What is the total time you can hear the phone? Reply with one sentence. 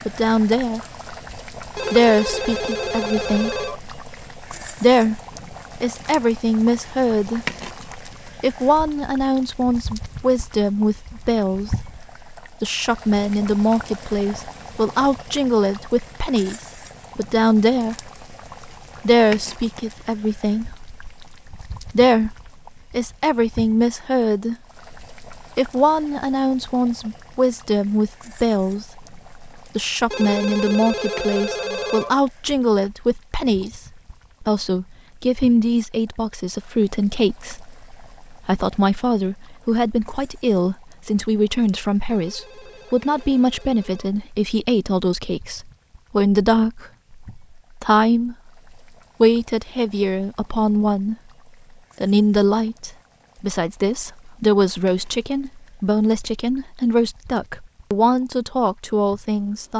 You can hear the phone for 6 seconds altogether.